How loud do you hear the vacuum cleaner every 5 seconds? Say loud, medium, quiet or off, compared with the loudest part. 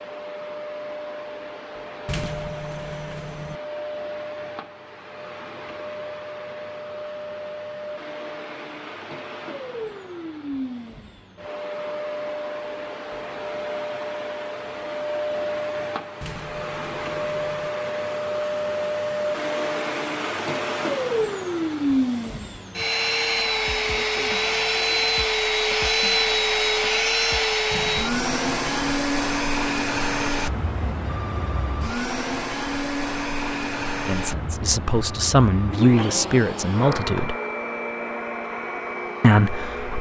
quiet, quiet, medium, medium, loud, loud, medium, medium.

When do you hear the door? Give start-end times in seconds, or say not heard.
2.0-3.6, 16.2-17.7, 27.7-29.0.